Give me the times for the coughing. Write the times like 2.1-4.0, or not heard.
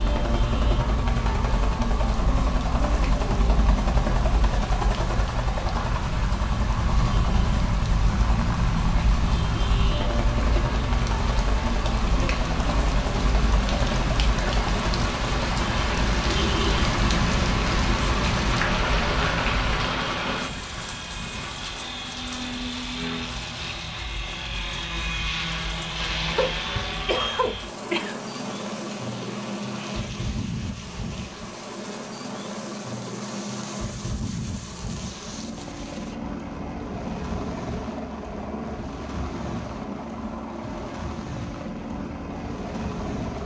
26.3-28.1.